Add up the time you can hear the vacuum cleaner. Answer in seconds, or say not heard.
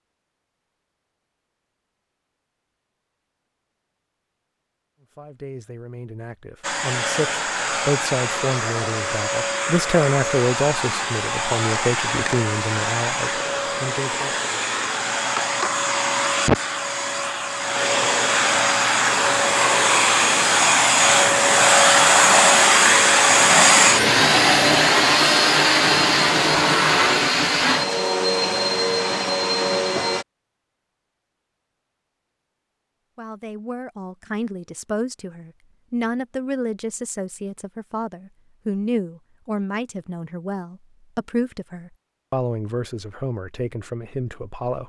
24 s.